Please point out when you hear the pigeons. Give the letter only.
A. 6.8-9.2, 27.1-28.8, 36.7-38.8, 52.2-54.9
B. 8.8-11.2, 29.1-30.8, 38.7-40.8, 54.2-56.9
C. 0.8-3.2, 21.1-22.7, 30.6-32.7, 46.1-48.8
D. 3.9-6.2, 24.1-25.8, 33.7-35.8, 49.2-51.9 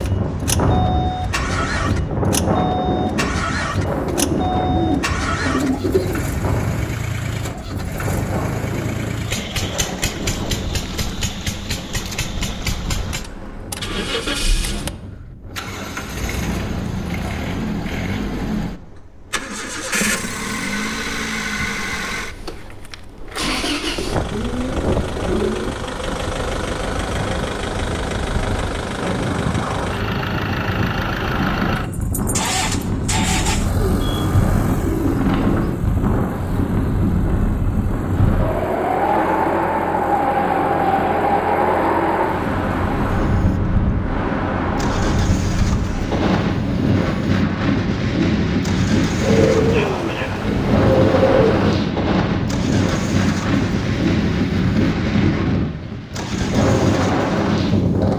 D.